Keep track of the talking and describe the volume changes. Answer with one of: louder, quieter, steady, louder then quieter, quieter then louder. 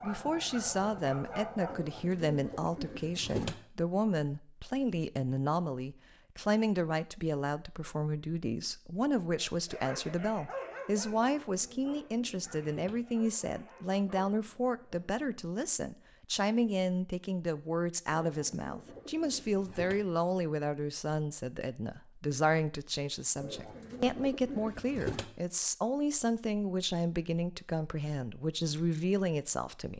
steady.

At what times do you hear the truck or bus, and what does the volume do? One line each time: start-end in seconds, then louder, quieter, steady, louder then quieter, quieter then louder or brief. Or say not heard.
not heard.